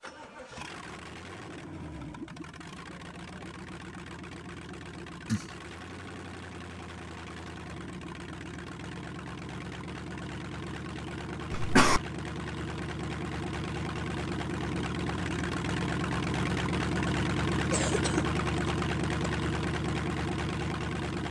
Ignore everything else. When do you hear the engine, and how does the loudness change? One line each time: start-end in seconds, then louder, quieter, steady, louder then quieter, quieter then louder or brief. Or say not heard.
0.0-21.2 louder.